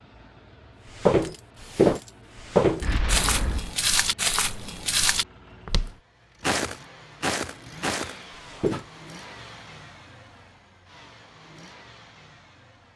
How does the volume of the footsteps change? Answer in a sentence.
The volume of the footsteps goes down.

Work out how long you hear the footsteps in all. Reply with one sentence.
You can hear the footsteps for 8 seconds altogether.